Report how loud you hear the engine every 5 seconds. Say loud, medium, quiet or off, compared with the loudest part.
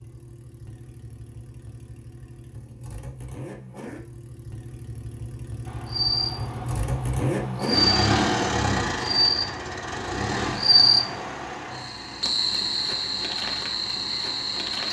quiet, loud, medium.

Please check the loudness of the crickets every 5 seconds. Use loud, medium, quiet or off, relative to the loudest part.
off, loud, loud.